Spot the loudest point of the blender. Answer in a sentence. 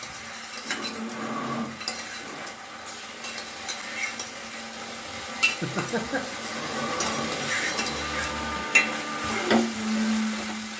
The loudest moment of the blender is at 10 seconds.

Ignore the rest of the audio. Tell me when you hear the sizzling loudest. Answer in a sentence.
The loudest moment of the sizzling is at 9 seconds.